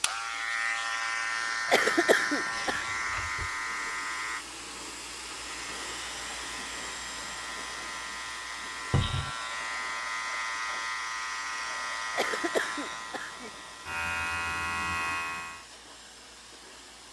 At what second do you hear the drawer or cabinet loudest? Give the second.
9 s.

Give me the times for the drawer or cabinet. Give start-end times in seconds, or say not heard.
2.6-3.6, 8.9-9.3.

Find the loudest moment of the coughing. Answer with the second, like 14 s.
2 s.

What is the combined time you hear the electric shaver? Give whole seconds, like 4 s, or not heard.
16 s.